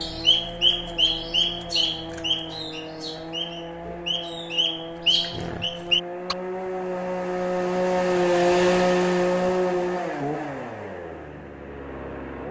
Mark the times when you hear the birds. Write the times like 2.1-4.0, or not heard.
0.0-6.3.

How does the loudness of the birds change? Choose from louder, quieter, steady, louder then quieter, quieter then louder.
quieter then louder.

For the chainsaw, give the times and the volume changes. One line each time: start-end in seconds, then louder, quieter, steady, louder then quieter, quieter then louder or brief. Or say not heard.
0.0-12.4 louder then quieter.